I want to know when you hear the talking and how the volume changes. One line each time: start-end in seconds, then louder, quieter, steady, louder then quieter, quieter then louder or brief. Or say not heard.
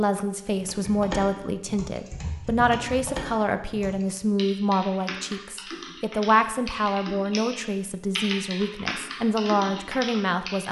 0.0-10.6 steady.